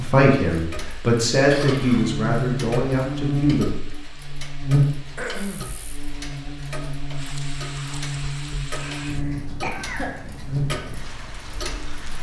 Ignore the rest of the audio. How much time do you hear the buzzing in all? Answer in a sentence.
The buzzing can be heard for 10 seconds in total.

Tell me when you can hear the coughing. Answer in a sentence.
You can hear the coughing from 1.4 to 2.1 s, from 5.2 to 5.8 s and from 9.2 to 10.2 s.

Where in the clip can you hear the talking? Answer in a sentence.
You can hear the talking from 0.0 to 3.6 s.